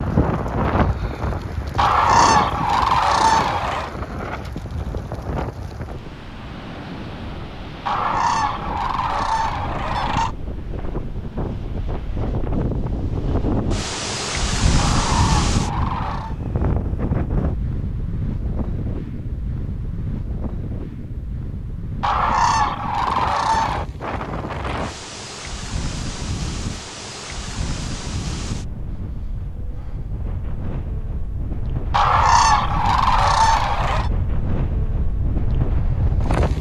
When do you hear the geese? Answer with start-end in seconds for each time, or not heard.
1.8-3.9, 7.8-10.3, 14.8-16.4, 22.0-23.9, 31.9-34.1.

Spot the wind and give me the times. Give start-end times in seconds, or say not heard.
0.0-36.5.